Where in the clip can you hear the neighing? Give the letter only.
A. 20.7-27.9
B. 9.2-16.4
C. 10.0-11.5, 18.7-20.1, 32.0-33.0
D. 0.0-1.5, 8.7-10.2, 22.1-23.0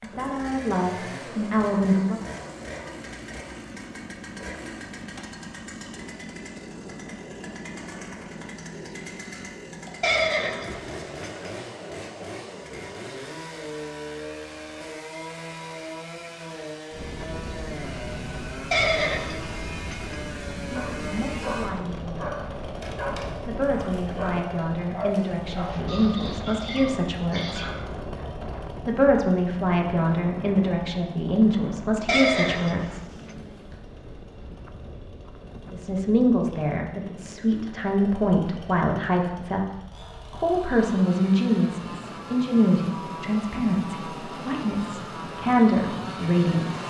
C.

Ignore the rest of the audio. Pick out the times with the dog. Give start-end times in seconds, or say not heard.
20.7-27.9.